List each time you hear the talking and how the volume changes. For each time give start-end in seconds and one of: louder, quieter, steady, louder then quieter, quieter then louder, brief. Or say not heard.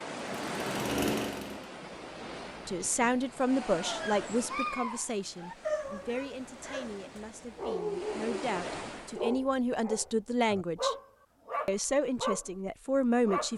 2.6-10.9 quieter then louder
11.7-13.5 brief.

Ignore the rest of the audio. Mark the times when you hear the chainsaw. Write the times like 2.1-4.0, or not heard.
0.2-1.7.